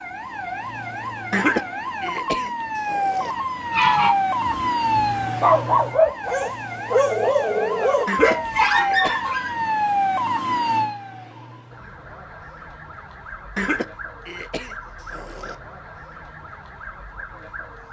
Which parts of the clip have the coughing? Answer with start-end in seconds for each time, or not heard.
1.3-3.4, 8.1-9.2, 13.6-15.6.